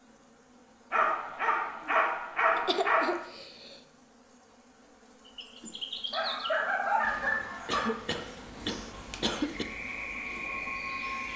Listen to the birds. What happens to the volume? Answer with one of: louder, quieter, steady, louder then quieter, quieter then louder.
quieter then louder.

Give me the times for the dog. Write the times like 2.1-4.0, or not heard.
0.9-3.1, 6.1-8.0.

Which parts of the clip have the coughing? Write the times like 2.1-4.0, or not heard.
2.5-3.8, 7.7-9.7.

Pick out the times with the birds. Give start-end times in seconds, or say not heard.
5.2-11.3.